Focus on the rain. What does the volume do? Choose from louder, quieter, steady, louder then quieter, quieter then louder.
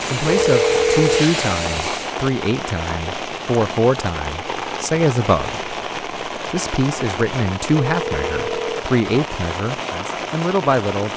steady.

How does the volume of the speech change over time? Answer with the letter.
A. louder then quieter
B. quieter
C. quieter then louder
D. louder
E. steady
E.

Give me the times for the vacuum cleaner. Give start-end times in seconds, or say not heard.
0.0-2.1.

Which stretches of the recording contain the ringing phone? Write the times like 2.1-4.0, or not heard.
0.2-1.3, 7.7-8.8.